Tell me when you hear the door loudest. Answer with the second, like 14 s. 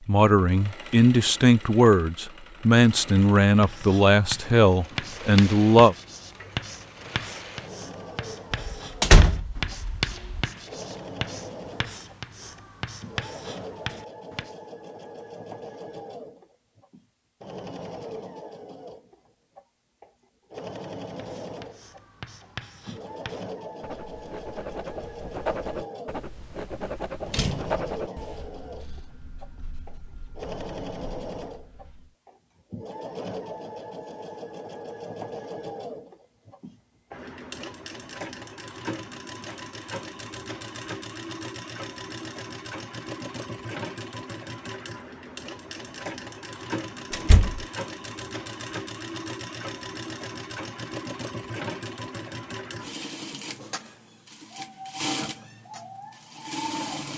9 s.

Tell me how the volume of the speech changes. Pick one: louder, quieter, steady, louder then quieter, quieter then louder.
steady.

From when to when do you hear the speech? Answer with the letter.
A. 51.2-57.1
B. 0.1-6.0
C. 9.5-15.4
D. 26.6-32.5
B.